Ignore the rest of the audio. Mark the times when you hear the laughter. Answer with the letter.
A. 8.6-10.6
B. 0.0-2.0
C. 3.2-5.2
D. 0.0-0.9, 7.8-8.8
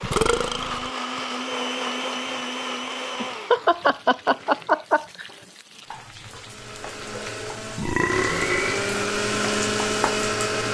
C.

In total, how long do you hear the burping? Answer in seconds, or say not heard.
2 s.